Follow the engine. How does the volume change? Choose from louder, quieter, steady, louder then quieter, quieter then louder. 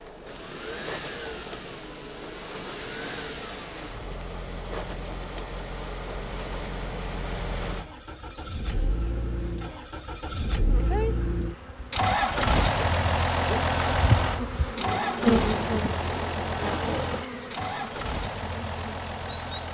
louder then quieter.